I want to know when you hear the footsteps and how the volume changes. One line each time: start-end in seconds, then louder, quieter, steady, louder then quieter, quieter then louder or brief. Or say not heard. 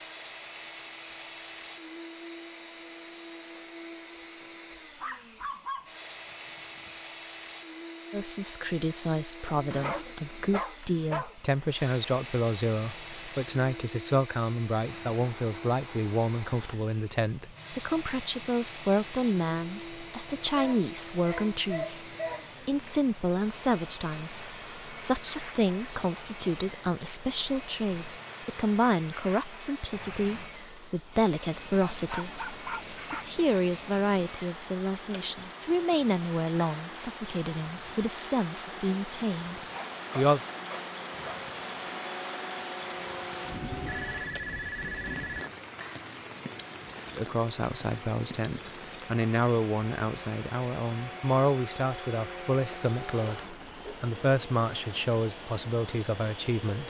not heard.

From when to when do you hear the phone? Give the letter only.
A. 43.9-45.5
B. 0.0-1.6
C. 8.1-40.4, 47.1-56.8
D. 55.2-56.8
A.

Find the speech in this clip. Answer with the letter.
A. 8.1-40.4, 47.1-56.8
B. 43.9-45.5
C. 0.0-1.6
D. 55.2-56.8
A.